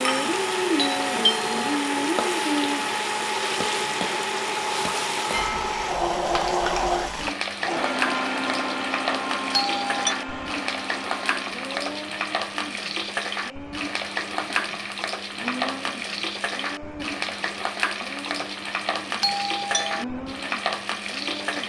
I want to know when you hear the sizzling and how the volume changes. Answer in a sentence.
The sizzling can be heard from 0.0 to 21.6 s, at a steady volume.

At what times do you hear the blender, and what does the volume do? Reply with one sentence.
You can hear the blender from 0.0 to 21.6 s, getting quieter.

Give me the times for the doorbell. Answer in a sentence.
The doorbell can be heard from 0.8 to 1.8 s, from 9.5 to 10.2 s and from 19.2 to 20.1 s.